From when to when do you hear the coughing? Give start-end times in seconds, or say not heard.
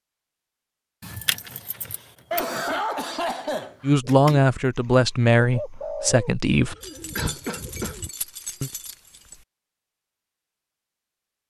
2.3-4.0, 6.8-8.0.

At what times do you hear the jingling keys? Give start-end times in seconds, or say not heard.
1.0-2.5, 6.8-9.4.